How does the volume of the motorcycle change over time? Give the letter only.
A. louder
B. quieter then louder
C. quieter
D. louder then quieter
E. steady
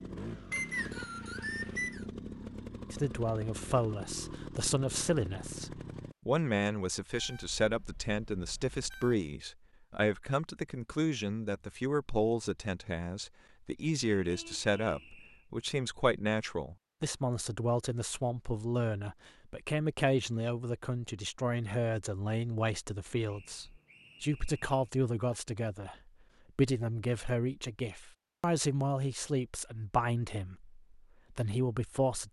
E.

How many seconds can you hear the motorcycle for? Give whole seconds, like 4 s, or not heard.
6 s.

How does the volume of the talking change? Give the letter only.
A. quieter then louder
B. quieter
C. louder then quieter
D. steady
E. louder
D.